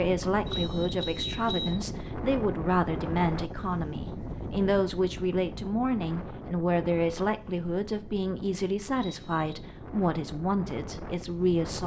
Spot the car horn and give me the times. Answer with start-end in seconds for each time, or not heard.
0.5-1.8, 8.9-9.5.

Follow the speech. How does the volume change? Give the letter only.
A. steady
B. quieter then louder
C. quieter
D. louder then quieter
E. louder
A.